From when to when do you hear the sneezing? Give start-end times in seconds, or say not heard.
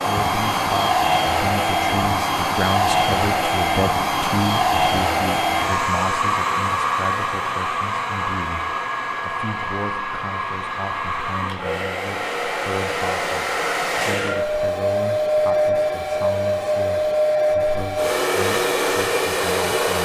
not heard.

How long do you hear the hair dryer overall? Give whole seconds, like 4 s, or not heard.
20 s.